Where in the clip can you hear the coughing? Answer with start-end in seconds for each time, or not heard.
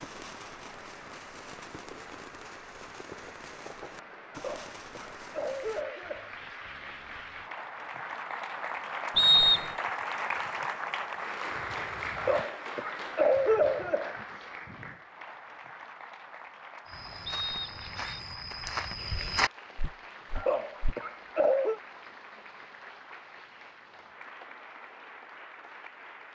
4.3-6.3, 12.2-14.2, 20.4-21.8.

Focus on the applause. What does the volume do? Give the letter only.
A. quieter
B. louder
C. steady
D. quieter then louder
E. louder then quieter
E.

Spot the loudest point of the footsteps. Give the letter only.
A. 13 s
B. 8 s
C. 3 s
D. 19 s
D.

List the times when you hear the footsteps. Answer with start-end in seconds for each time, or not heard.
16.9-20.9.